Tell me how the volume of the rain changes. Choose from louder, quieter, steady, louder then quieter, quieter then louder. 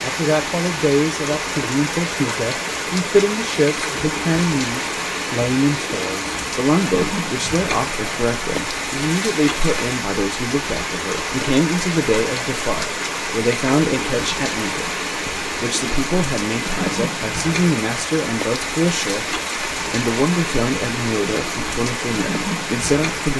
steady.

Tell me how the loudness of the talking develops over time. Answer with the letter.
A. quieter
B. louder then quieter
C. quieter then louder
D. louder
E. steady
E.